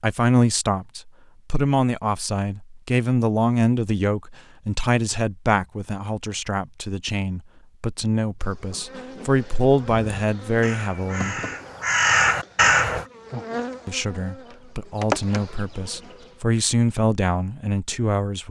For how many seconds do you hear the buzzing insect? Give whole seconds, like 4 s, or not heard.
8 s.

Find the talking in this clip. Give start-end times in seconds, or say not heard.
0.0-11.3, 13.8-18.4.